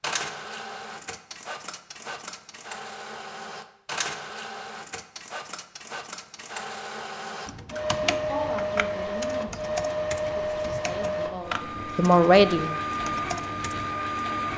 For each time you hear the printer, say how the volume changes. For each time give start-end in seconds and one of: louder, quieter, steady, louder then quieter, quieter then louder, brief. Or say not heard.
0.0-14.5 louder.